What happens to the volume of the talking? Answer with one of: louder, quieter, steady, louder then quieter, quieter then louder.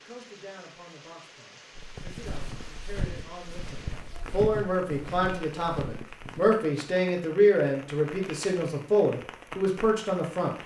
louder.